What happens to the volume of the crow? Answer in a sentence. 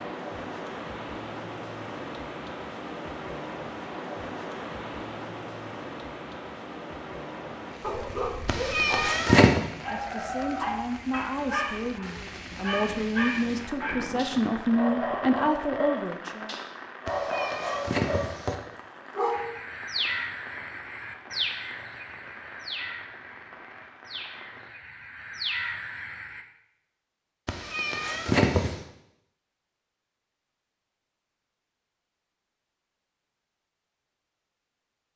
The volume of the crow goes down, then up.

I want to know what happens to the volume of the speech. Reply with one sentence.
The volume of the speech goes up.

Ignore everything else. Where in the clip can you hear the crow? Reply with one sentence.
The crow can be heard from 19.3 to 26.4 s.